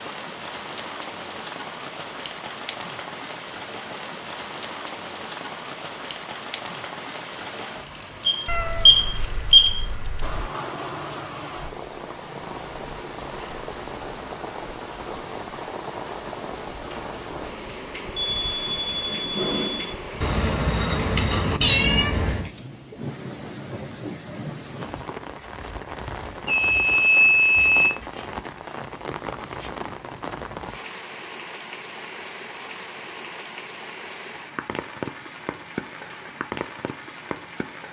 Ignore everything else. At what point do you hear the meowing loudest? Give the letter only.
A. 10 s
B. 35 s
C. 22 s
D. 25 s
C.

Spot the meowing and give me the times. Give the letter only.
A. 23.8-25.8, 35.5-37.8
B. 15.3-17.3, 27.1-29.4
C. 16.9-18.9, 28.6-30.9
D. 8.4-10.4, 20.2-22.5
D.